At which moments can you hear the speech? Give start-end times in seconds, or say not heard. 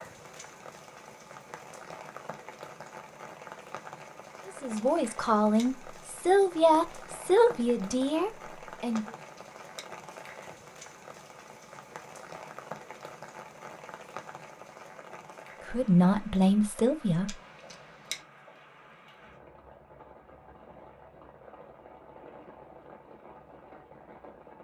4.5-9.1, 15.7-17.4.